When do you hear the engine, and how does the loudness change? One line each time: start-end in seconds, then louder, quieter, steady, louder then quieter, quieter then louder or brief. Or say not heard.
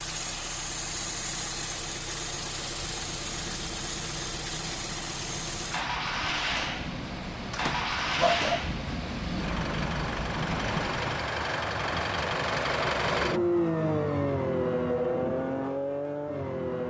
0.0-16.8 louder.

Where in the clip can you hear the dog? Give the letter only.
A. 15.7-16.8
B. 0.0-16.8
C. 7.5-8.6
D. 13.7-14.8
C.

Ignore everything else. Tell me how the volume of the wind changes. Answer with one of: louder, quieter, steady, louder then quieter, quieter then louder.
louder.